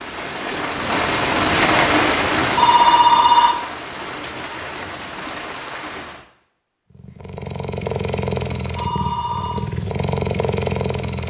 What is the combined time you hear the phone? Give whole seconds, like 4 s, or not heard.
2 s.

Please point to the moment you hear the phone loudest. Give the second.
3 s.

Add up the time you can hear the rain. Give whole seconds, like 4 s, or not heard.
6 s.